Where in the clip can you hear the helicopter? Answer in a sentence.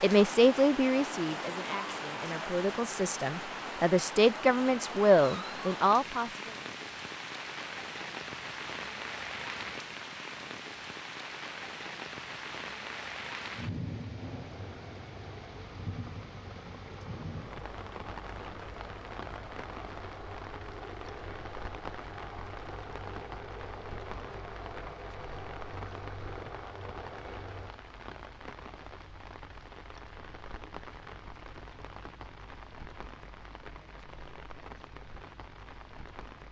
You can hear the helicopter from 14.2 to 27.8 s.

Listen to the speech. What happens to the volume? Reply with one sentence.
The loudness of the speech goes down, then up.